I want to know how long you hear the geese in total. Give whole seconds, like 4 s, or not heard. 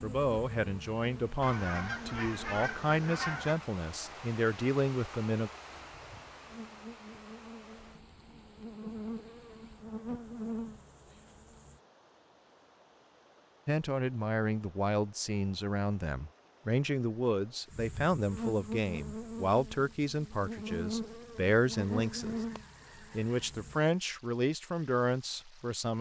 4 s.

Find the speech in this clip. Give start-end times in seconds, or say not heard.
0.0-5.5, 13.7-22.4, 23.1-25.9.